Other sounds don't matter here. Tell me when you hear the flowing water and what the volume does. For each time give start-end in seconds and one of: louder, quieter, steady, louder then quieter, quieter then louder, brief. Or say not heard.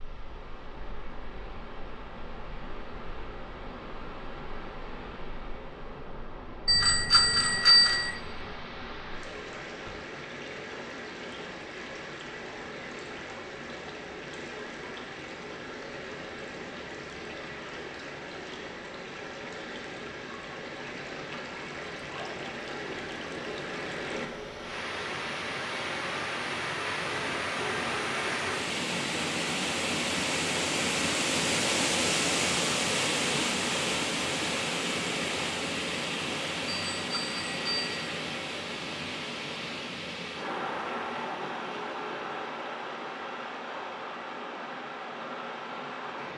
0.0-46.3 louder then quieter.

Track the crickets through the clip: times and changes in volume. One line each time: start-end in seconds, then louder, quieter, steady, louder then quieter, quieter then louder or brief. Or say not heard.
not heard.